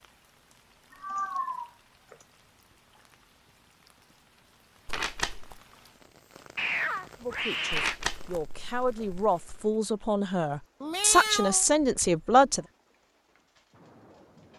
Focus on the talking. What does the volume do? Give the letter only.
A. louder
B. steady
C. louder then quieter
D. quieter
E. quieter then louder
A.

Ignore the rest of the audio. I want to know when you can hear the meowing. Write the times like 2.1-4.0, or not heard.
1.0-2.1, 6.5-8.0, 10.8-12.7.